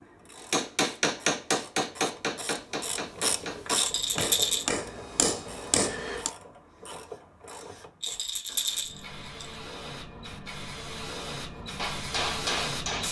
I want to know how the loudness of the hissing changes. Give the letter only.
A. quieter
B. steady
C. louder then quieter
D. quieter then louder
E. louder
E.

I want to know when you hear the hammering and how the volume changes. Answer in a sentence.
The hammering can be heard from 0.4 to 6.3 s, getting quieter then louder; and briefly from 11.6 to 13.0 s.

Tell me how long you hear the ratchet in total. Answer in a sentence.
You can hear the ratchet for 8 seconds altogether.